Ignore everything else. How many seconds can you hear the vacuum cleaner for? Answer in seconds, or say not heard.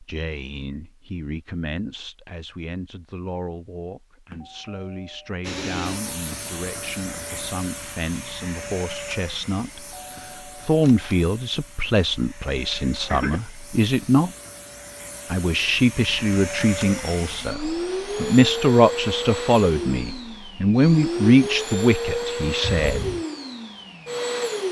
19 s.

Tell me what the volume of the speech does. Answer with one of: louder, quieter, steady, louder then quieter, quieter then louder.
louder.